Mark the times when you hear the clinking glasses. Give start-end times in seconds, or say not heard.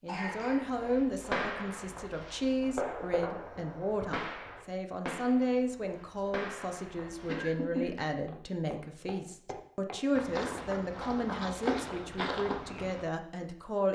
not heard.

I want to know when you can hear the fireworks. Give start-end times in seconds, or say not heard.
0.3-7.5.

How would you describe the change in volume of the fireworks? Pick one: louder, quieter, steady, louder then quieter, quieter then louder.
quieter.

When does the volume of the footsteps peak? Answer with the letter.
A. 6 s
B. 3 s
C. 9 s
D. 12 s
D.